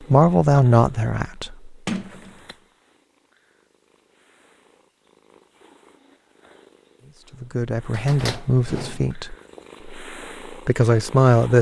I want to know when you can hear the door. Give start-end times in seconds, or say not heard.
1.9-2.4, 7.9-9.6.